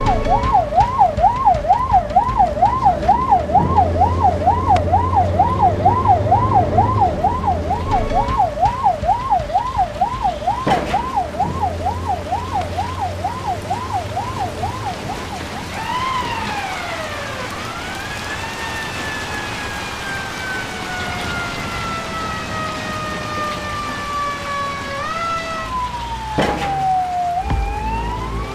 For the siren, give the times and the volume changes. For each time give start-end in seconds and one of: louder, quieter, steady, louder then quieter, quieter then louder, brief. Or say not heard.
0.0-28.5 quieter then louder.